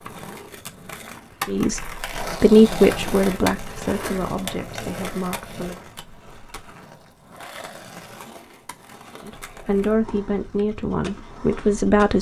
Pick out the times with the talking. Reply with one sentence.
The talking can be heard from 1.4 to 5.8 s and from 9.2 to 12.1 s.